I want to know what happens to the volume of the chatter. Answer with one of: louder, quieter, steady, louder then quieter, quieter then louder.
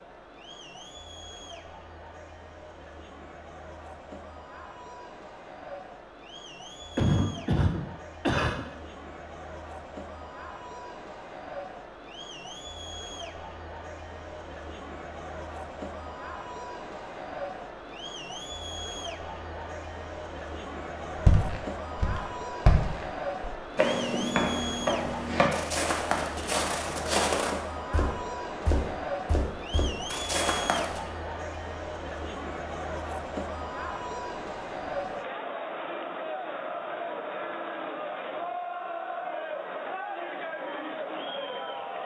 louder.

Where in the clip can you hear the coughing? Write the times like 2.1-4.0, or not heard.
7.0-8.7.